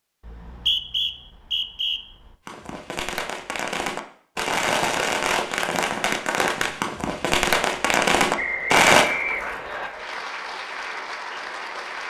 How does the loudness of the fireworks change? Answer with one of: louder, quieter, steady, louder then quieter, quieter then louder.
louder.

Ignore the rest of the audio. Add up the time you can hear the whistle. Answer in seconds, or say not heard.
3 s.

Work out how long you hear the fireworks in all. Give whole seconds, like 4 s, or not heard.
7 s.